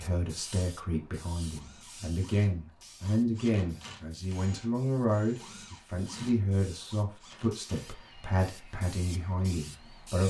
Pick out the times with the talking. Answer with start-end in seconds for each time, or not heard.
0.0-10.2.